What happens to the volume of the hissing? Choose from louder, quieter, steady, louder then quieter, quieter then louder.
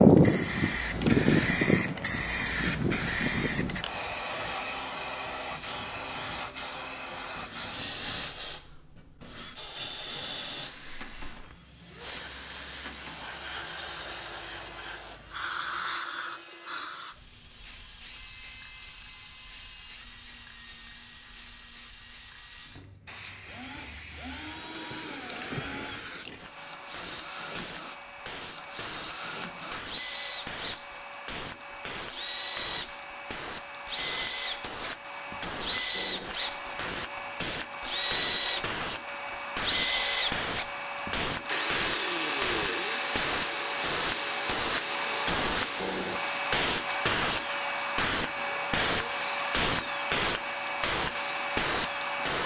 quieter then louder.